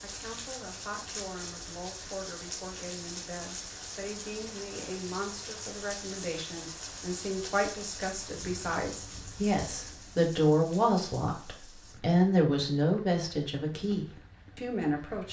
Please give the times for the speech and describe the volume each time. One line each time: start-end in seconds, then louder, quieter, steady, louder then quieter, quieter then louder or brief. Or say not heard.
0.0-15.2 louder.